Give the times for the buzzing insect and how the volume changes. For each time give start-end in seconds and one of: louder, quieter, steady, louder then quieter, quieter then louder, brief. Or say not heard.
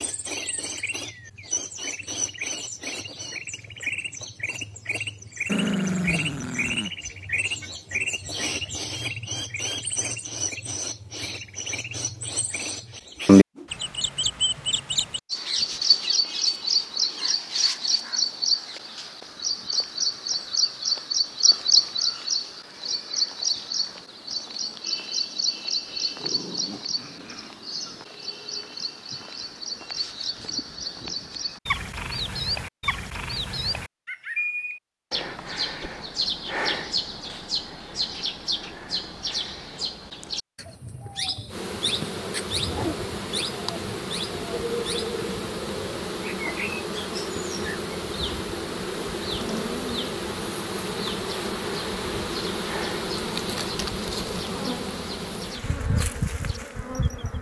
41.5-57.3 steady.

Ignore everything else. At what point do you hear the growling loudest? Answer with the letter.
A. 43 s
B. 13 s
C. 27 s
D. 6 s
D.